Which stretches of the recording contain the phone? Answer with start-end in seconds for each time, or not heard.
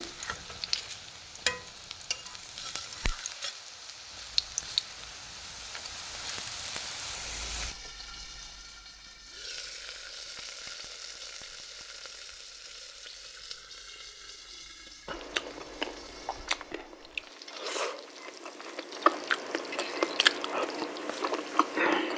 not heard.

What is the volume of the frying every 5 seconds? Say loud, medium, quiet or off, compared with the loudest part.
loud, medium, medium, medium, medium.